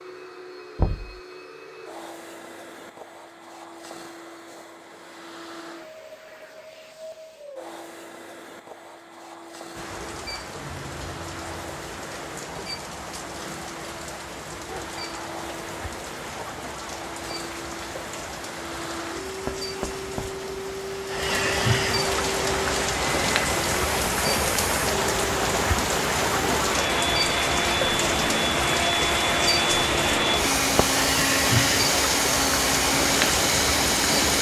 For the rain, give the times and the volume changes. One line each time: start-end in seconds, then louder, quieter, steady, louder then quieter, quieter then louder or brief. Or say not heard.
9.8-34.3 louder.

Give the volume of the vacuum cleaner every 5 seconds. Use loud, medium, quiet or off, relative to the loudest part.
quiet, quiet, quiet, quiet, medium, loud, loud.